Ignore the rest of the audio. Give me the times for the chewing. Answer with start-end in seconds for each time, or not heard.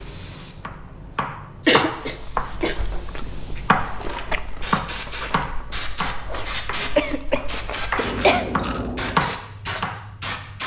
2.0-9.3.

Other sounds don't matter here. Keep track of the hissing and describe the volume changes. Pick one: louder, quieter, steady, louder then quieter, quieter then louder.
louder.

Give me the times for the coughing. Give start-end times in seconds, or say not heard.
1.6-2.8, 7.0-8.4.